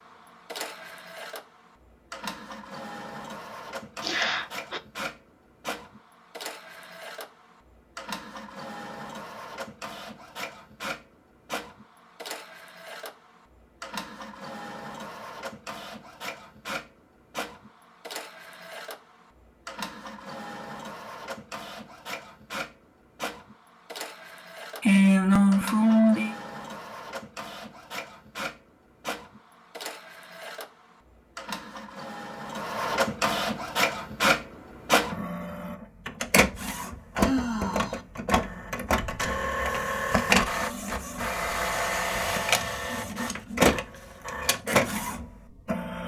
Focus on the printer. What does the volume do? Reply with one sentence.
The loudness of the printer goes up.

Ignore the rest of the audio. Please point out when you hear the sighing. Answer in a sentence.
The sighing can be heard from 4.0 to 4.8 s, from 24.8 to 26.4 s and from 37.1 to 38.0 s.